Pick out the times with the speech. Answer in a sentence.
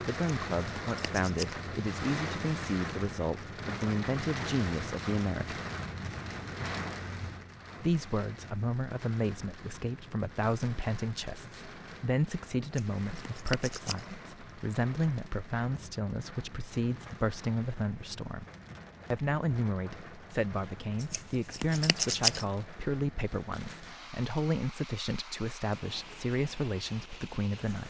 The speech can be heard from 0.1 to 5.6 s, from 7.8 to 18.4 s and from 19.1 to 27.8 s.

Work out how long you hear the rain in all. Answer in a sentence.
The rain can be heard for 28 seconds in total.